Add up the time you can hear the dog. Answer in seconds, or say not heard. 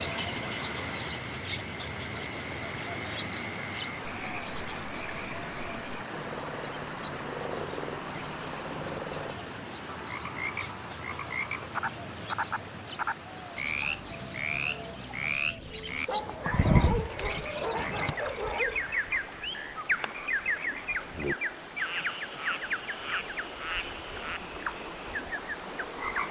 3 s.